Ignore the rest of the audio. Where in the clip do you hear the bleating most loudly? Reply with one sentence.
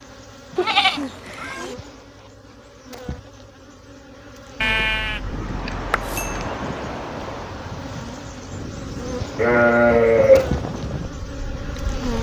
The volume of the bleating peaks at 10 seconds.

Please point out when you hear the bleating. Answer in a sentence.
You can hear the bleating from 0.6 to 1.8 s, from 4.6 to 6.5 s and from 9.3 to 10.5 s.